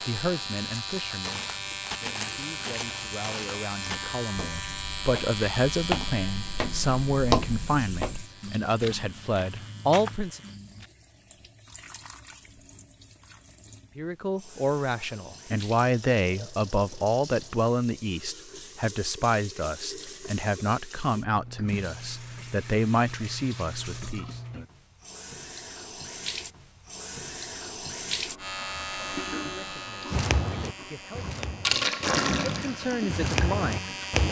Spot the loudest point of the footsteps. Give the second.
7 s.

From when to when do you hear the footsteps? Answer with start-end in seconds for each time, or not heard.
1.1-10.9, 30.1-34.2.